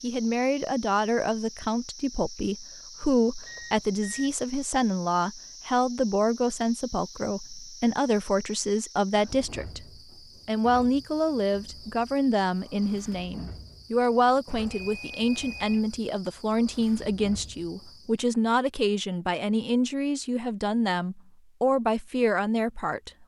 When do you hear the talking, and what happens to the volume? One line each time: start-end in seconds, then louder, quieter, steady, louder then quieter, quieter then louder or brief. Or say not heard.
0.0-9.8 steady
10.4-23.1 steady.